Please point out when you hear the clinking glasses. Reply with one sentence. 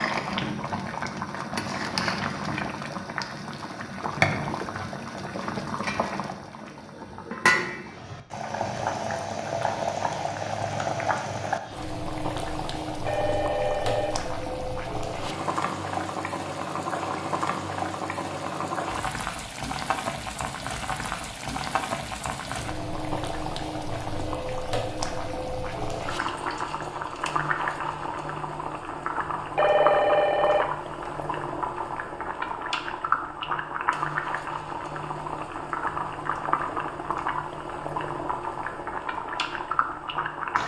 You can't hear the clinking glasses here.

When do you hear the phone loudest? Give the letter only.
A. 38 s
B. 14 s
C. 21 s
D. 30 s
D.